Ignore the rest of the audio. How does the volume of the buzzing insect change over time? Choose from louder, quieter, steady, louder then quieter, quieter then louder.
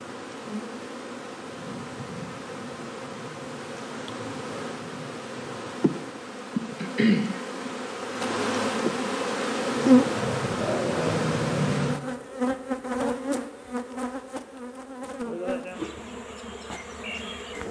louder then quieter.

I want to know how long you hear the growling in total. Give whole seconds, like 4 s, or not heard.
2 s.